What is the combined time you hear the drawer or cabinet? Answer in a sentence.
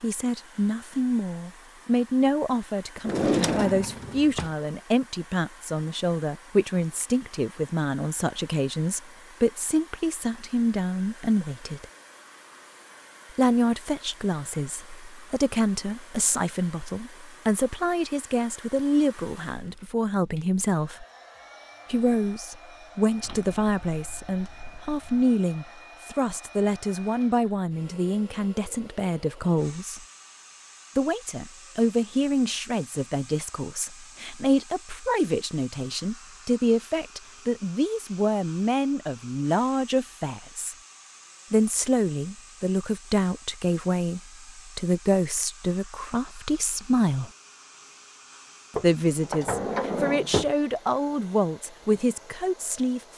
The drawer or cabinet can be heard for 5 seconds in total.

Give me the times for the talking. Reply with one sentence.
The talking can be heard from 0.0 to 11.8 s, from 13.3 to 21.1 s, from 21.9 to 30.0 s, from 30.9 to 40.8 s, from 41.5 to 47.3 s and from 48.8 to 53.0 s.